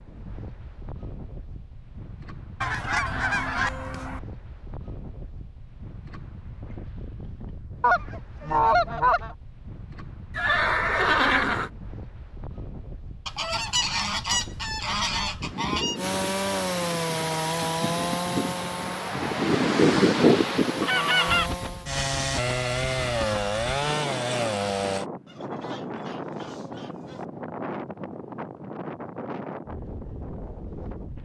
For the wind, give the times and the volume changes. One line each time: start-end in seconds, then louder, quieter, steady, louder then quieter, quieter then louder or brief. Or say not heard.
0.0-31.2 louder then quieter.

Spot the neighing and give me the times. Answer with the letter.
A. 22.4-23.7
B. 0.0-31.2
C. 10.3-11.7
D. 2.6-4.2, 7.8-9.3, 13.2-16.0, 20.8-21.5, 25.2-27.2
C.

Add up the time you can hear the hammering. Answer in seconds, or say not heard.
not heard.